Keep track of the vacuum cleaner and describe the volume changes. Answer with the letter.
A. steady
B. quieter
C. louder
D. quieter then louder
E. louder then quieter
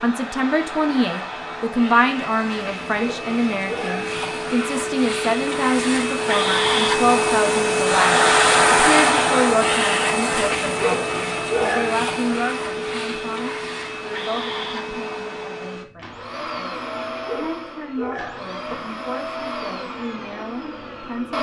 E.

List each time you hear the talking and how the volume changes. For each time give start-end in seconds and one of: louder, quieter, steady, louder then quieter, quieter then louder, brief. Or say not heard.
0.0-21.3 quieter.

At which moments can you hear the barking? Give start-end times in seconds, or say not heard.
3.0-4.2, 10.8-11.9, 17.2-18.4.